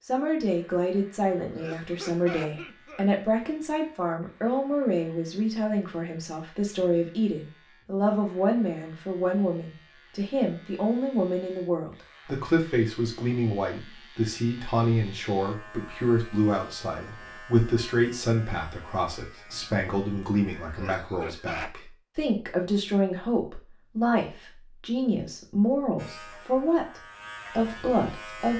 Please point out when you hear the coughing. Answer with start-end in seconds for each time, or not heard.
1.6-3.0, 20.8-21.8.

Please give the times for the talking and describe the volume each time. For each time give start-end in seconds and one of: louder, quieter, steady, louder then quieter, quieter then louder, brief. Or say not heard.
0.0-28.5 steady.